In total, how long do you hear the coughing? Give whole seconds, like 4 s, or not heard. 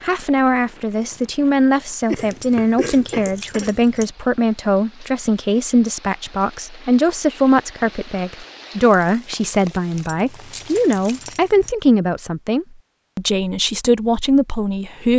2 s.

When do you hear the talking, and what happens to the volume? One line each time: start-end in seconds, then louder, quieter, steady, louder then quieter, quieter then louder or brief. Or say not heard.
0.0-15.1 steady.